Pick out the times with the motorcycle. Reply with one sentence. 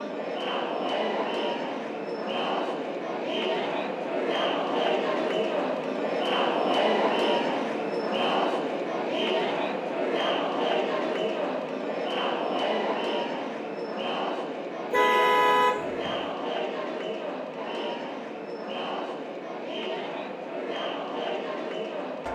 The motorcycle can't be heard in this clip.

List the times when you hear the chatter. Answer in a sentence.
The chatter can be heard from 0.0 to 22.3 s.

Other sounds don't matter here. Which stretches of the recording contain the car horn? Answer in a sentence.
The car horn can be heard from 14.9 to 16.1 s.